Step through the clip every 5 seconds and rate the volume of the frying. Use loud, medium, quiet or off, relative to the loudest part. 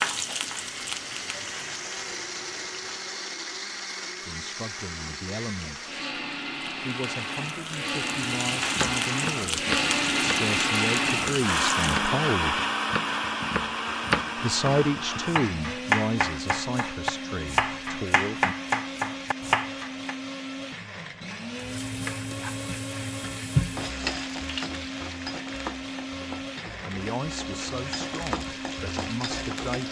loud, loud, loud, off, loud, medium.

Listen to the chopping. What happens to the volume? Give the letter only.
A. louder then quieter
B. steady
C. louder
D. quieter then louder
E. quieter
C.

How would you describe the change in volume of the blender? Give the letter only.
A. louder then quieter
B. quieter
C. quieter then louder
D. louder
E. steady
A.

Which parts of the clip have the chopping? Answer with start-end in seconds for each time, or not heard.
8.8-20.1.